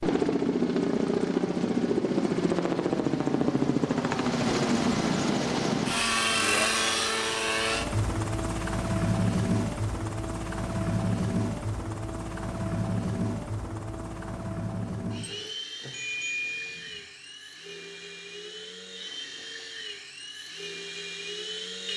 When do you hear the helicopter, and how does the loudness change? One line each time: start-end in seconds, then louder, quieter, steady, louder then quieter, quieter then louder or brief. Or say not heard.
0.0-21.9 quieter.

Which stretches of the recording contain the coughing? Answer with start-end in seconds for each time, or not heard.
not heard.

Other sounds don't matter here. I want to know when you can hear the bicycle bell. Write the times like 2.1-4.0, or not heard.
15.9-17.0.